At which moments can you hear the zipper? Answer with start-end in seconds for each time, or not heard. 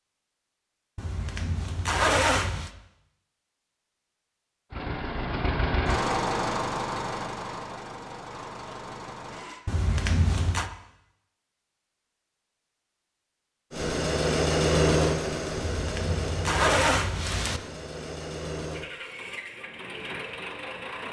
0.9-2.7, 9.7-10.7, 15.6-17.6.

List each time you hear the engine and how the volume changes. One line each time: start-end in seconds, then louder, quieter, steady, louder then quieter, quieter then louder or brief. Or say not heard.
4.7-9.7 quieter
13.7-21.0 quieter.